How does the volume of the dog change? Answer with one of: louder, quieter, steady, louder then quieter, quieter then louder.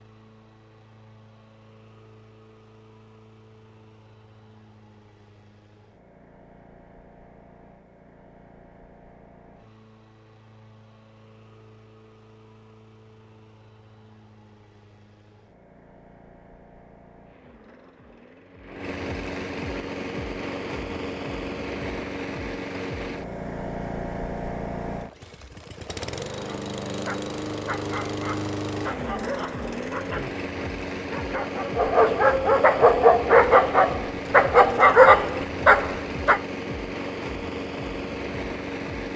louder.